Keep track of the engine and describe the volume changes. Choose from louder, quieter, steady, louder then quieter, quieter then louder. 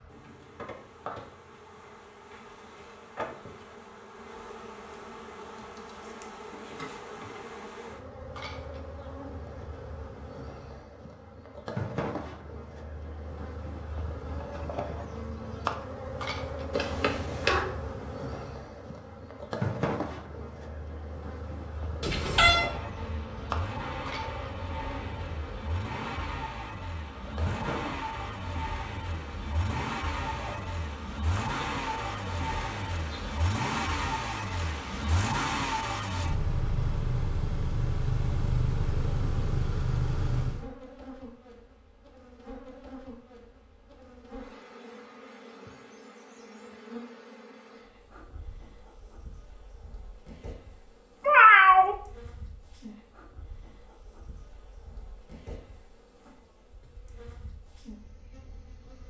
louder.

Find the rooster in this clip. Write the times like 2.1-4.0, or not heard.
not heard.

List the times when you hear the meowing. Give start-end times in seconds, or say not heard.
16.8-17.6, 22.0-22.7, 51.2-52.0.